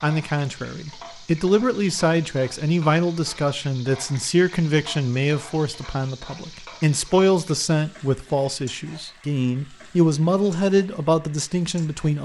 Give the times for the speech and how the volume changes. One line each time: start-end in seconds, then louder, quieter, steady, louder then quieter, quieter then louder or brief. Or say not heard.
0.0-12.2 steady.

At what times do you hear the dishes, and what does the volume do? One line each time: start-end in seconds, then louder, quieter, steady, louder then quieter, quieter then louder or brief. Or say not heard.
not heard.